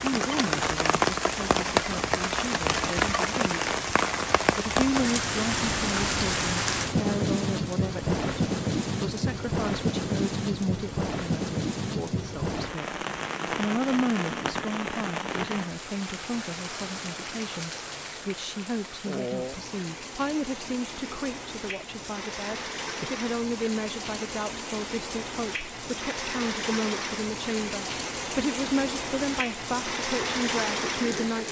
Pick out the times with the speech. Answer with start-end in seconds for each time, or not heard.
0.0-8.3, 9.0-31.4.